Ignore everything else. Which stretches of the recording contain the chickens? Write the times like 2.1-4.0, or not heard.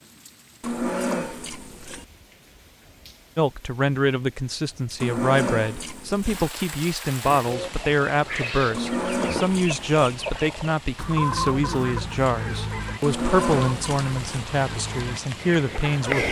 7.4-16.2.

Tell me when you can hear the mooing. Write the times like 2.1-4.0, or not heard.
0.6-2.0, 5.0-6.4, 8.7-10.0, 13.0-14.4.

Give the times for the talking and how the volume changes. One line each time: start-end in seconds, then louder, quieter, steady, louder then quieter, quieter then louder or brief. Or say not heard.
3.4-16.2 steady.